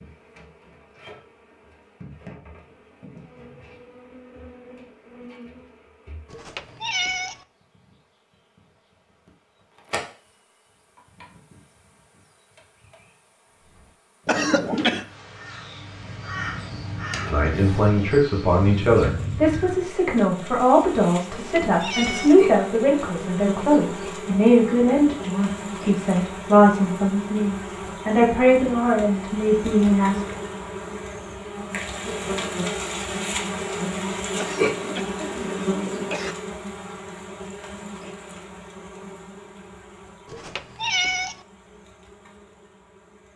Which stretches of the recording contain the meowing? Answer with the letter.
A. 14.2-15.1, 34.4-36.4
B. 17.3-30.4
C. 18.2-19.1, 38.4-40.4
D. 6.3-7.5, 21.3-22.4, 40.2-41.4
D.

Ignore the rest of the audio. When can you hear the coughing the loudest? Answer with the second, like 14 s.
15 s.